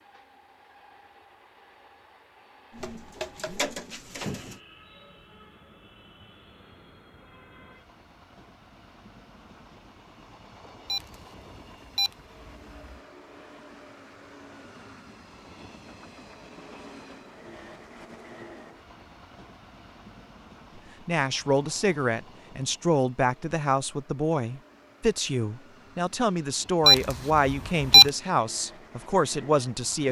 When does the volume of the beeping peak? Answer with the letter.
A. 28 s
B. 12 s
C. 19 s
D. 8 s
A.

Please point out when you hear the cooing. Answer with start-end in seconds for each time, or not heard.
2.7-4.6.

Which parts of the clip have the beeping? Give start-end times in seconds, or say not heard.
10.8-13.0, 26.9-28.1.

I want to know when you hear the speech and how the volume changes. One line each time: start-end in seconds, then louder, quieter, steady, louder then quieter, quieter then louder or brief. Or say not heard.
21.1-30.0 steady.